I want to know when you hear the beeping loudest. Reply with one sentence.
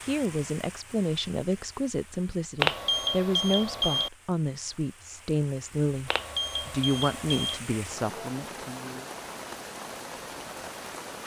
The volume of the beeping peaks at 3 seconds.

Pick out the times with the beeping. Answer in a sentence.
The beeping can be heard from 2.6 to 4.1 s and from 6.0 to 7.6 s.